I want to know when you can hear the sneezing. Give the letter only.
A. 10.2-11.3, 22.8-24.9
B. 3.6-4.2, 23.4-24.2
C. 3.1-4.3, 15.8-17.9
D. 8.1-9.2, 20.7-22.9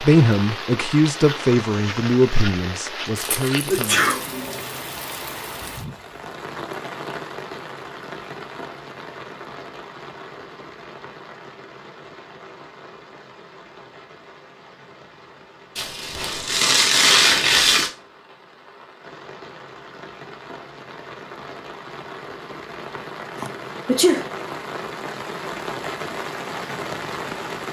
B.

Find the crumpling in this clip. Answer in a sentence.
The crumpling can be heard from 3.1 to 4.3 s and from 15.8 to 17.9 s.